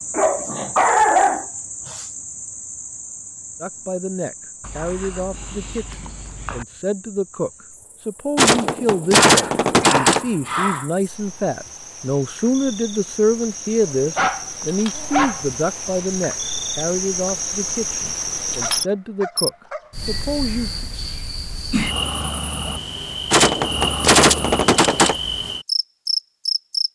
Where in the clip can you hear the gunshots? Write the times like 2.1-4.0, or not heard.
8.3-10.2, 23.3-25.1.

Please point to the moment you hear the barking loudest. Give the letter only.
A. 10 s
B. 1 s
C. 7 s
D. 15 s
B.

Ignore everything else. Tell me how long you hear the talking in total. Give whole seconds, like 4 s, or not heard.
17 s.